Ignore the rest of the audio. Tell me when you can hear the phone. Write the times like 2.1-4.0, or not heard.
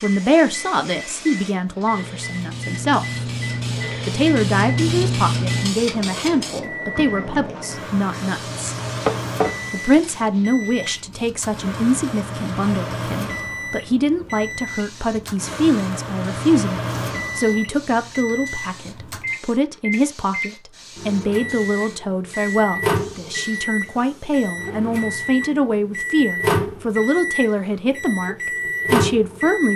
not heard.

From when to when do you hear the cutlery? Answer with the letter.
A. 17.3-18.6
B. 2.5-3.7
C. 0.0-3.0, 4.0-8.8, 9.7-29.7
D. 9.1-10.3
D.